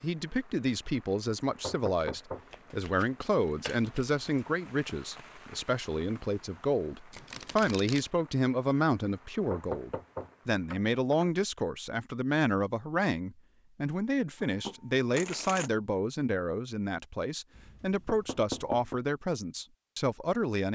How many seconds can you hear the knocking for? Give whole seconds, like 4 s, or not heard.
4 s.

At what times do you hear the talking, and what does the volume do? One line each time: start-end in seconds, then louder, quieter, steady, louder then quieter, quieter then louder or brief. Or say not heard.
0.0-20.6 steady.